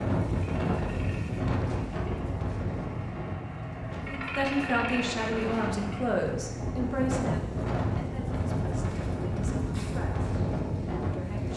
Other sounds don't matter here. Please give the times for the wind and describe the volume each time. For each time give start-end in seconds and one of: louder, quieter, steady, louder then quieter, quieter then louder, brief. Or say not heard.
0.0-11.5 quieter then louder.